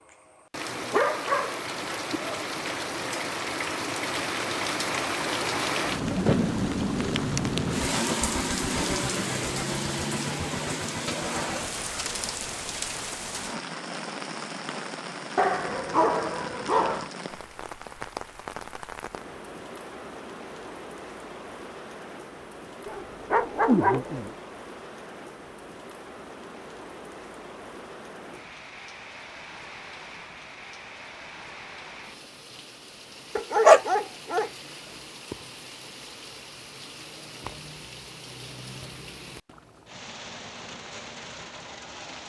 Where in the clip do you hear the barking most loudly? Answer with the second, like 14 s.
34 s.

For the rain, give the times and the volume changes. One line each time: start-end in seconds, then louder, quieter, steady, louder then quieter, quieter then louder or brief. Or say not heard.
0.0-42.2 quieter.